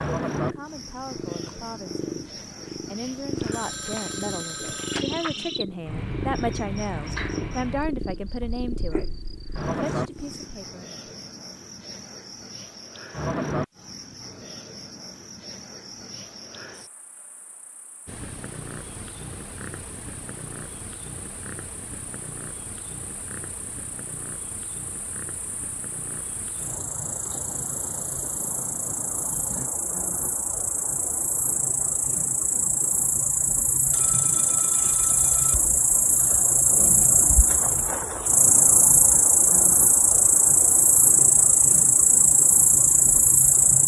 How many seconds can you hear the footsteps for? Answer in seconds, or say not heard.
not heard.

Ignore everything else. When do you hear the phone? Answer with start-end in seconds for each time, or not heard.
3.4-5.2, 33.9-35.5.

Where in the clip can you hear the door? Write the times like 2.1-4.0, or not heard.
not heard.